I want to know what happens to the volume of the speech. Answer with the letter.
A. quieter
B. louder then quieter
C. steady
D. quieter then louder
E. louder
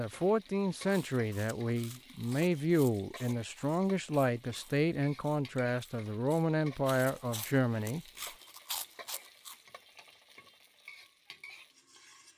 C.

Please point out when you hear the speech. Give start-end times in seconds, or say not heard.
0.0-8.1.